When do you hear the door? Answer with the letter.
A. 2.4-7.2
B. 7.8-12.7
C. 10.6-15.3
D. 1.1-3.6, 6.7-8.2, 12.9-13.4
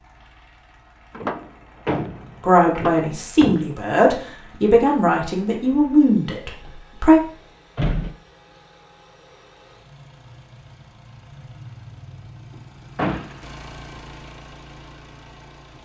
D.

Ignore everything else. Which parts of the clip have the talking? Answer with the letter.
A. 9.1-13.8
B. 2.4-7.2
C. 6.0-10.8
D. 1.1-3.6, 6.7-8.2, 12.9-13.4
B.